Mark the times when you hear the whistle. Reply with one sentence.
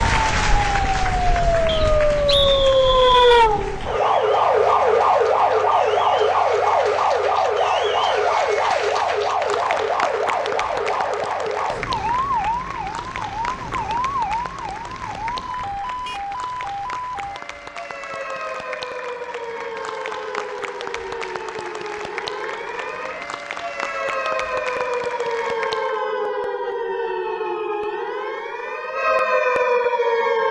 The whistle can be heard from 1.6 to 3.5 s.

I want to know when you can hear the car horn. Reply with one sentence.
The car horn can't be heard in this clip.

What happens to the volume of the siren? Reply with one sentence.
The loudness of the siren goes down, then up.